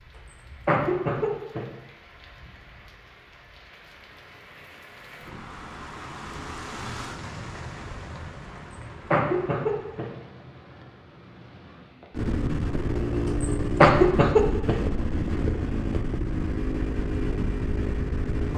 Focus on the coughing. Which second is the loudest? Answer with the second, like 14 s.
14 s.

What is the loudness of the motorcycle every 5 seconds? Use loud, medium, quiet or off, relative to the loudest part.
off, off, loud, loud.